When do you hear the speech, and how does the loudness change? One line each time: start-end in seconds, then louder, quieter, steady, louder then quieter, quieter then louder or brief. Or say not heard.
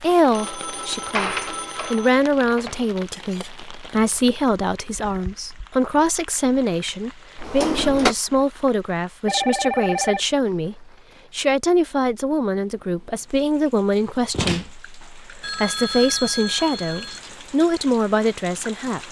0.0-19.0 steady.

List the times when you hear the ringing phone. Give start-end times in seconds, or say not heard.
0.3-2.1, 9.2-10.2, 15.4-17.2.